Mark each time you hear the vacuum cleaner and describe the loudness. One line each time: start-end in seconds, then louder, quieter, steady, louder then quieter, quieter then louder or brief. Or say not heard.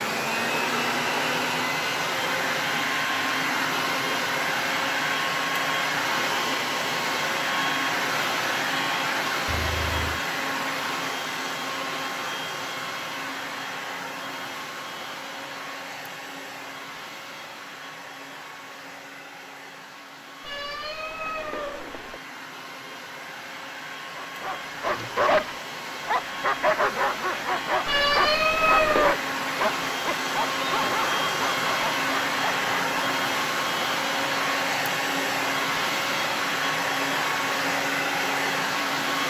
0.0-39.2 quieter then louder.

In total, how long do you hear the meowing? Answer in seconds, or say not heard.
4 s.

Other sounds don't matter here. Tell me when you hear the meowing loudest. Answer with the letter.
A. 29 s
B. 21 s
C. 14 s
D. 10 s
A.